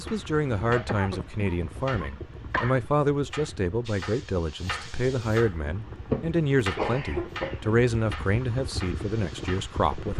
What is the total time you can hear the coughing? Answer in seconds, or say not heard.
4 s.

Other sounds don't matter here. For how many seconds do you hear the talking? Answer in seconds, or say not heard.
10 s.